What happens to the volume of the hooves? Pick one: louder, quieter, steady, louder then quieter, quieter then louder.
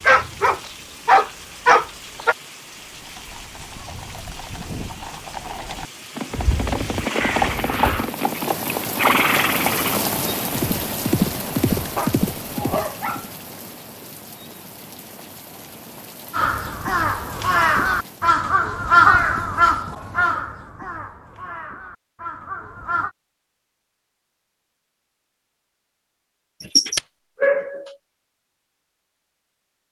louder.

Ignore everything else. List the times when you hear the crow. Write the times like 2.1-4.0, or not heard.
6.3-8.1, 16.3-23.1.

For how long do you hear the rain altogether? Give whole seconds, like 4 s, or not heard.
18 s.